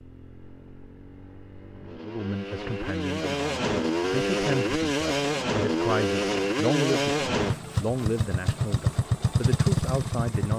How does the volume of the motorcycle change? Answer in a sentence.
The volume of the motorcycle goes up.